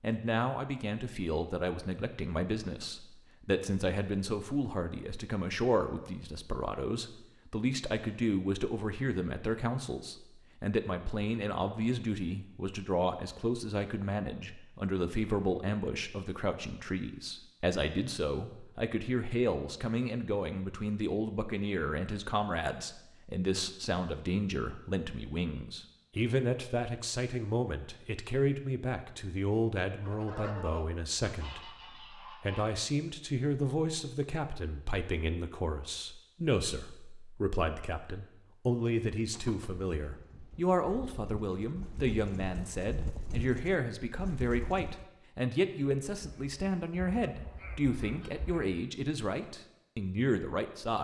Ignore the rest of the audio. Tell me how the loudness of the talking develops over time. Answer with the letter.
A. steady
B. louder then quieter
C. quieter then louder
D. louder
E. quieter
A.